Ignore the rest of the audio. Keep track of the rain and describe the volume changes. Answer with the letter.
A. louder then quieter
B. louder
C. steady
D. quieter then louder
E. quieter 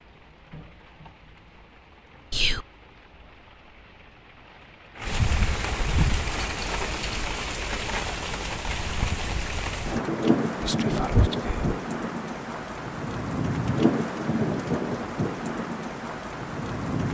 B.